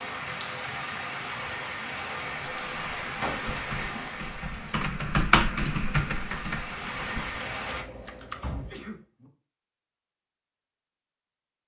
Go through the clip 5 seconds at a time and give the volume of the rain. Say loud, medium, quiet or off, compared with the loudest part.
loud, loud, off.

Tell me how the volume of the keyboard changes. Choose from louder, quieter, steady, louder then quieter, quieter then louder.
louder then quieter.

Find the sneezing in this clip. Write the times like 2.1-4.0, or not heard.
8.6-9.0.